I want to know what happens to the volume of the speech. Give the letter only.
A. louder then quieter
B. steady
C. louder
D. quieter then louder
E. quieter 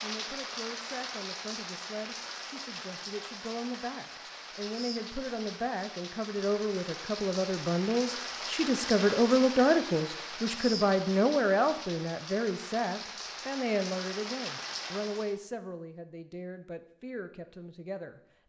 A.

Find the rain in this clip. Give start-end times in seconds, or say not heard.
0.0-15.4.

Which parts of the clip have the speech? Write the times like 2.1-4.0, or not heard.
0.0-18.2.